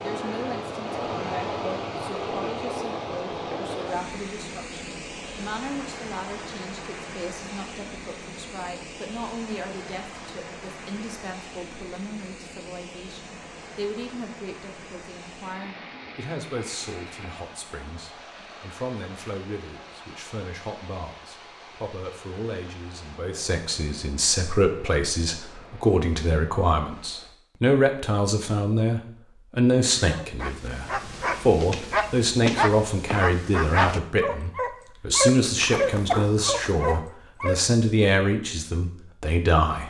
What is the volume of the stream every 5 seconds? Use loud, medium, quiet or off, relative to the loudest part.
loud, medium, medium, medium, quiet, quiet, off, off.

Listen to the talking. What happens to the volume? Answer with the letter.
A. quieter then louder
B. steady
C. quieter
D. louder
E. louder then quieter
D.